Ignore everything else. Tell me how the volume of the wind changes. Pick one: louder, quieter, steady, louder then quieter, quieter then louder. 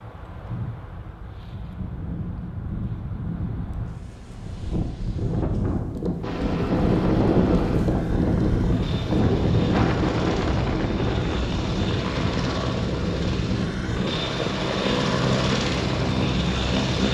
louder then quieter.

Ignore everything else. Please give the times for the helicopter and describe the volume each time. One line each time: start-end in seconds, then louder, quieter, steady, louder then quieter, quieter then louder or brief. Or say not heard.
6.2-17.0 louder.